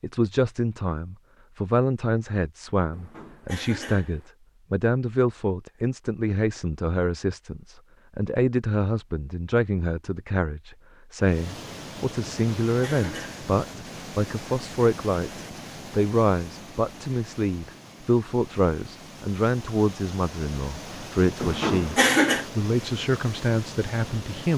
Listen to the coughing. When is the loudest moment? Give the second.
22 s.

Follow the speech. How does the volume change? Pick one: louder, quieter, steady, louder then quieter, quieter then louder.
steady.